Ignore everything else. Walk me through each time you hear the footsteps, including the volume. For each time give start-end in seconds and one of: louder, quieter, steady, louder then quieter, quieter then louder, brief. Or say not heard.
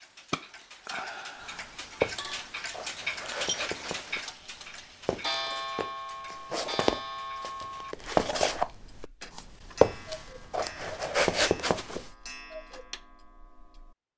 1.5-12.1 quieter then louder.